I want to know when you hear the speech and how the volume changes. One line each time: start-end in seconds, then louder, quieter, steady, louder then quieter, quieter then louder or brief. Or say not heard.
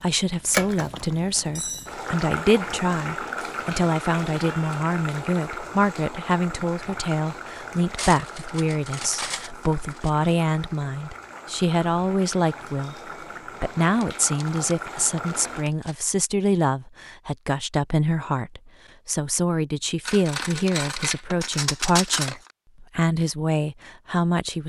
0.0-12.9 steady
13.6-24.6 steady.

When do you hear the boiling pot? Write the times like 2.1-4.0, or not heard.
0.0-15.7.